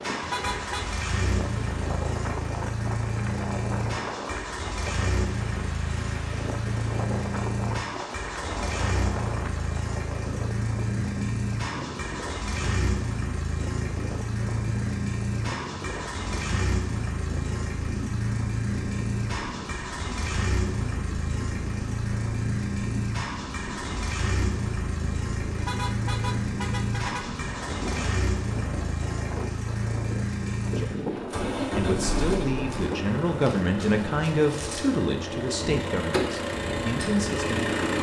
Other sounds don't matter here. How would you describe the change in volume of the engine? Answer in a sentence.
The loudness of the engine stays about the same.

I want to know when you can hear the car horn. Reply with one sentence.
The car horn can be heard from 0.2 to 0.9 s and from 25.6 to 27.4 s.